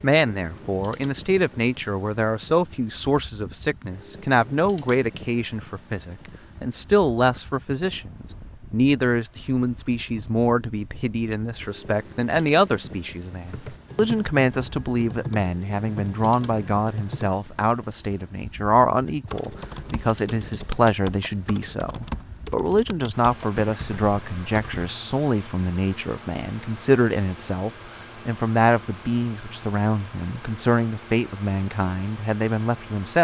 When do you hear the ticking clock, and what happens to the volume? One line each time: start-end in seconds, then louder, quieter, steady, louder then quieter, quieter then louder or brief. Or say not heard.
not heard.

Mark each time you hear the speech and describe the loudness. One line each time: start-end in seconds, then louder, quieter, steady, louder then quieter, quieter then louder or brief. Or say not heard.
0.0-33.1 steady.